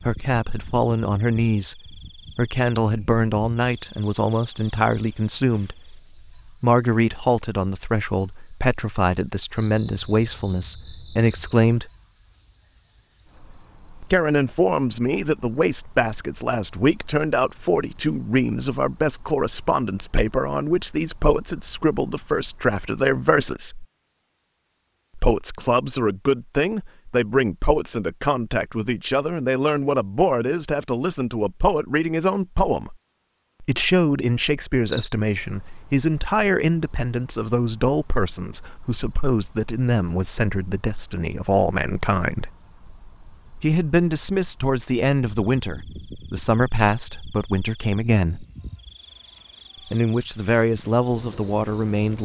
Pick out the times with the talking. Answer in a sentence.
You can hear the talking from 0.0 to 11.9 s, from 14.0 to 23.9 s, from 25.1 to 33.0 s, from 33.6 to 42.5 s, from 43.6 to 48.5 s and from 49.9 to 52.1 s.